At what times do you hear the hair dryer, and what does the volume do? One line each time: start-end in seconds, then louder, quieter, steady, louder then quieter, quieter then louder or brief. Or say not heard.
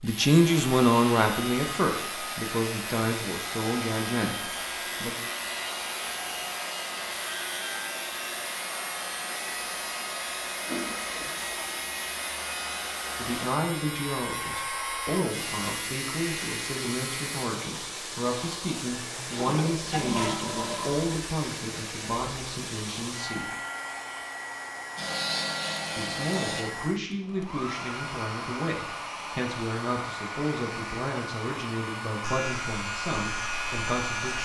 0.0-34.4 steady.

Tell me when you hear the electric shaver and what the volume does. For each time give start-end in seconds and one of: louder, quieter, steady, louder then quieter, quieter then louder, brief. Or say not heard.
0.0-17.4 steady
24.9-26.6 brief
32.2-34.4 brief.